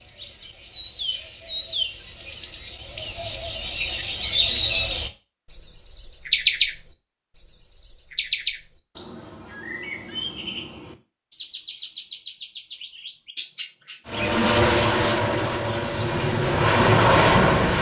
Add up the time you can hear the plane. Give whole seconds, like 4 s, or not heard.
4 s.